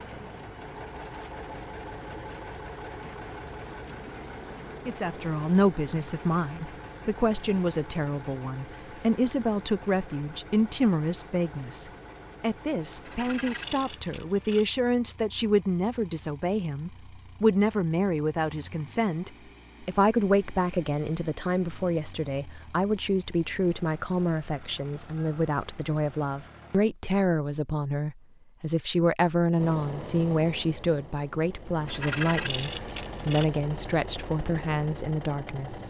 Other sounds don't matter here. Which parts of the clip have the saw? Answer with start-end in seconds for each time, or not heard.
13.1-14.7, 31.9-33.5.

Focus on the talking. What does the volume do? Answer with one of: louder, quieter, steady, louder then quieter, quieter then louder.
steady.